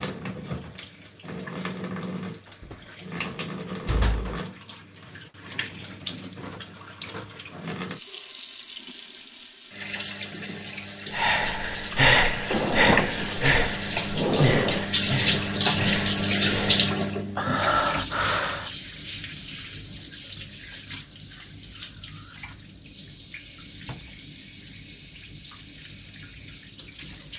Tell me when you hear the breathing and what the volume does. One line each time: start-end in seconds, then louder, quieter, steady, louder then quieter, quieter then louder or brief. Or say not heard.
11.1-18.7 quieter then louder.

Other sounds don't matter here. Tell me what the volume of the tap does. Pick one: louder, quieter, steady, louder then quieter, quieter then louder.
louder then quieter.